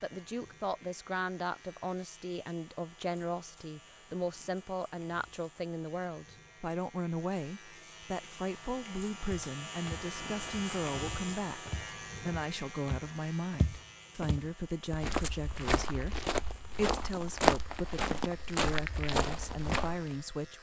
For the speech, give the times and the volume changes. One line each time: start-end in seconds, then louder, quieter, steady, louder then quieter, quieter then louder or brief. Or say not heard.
0.0-20.5 steady.